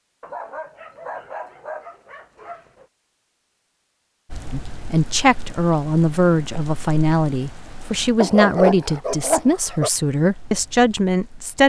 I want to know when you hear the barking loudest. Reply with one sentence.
The volume of the barking peaks at 9 seconds.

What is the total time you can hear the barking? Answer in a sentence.
You can hear the barking for 4 seconds altogether.